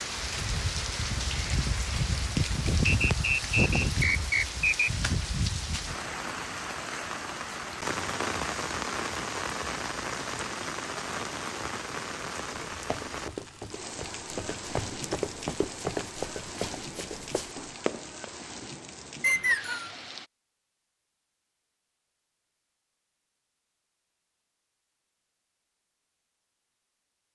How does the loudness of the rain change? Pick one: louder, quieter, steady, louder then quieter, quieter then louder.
quieter.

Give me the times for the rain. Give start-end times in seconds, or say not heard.
0.0-20.3.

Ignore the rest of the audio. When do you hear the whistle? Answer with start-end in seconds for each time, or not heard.
2.9-4.9, 19.2-19.9.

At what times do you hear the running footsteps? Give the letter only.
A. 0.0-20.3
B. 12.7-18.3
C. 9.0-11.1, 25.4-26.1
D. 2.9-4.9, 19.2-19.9
B.